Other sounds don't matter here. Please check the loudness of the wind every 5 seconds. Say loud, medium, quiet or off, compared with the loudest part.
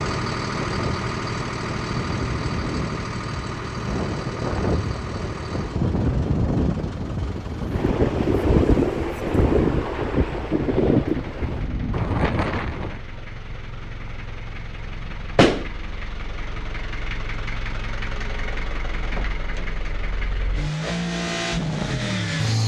medium, loud, loud, off, off.